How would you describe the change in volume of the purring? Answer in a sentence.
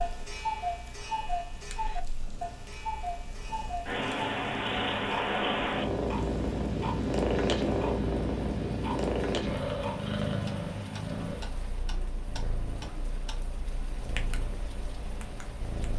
The volume of the purring goes up, then down.